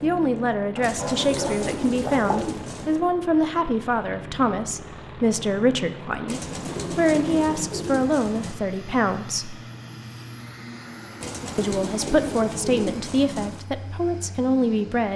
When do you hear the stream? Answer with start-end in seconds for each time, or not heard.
not heard.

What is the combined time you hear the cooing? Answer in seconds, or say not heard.
7 s.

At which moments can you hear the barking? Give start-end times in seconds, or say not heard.
0.8-2.5.